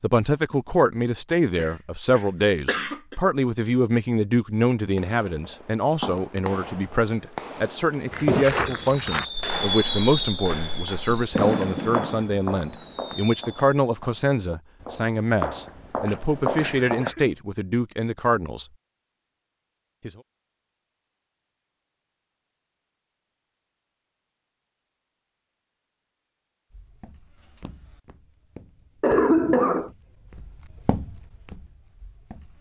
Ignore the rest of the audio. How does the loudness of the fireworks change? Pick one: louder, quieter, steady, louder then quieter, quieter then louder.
louder then quieter.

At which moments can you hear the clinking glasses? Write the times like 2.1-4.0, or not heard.
not heard.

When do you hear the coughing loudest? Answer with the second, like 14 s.
29 s.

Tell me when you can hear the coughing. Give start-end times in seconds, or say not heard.
1.6-3.1, 16.1-17.4, 29.0-29.9.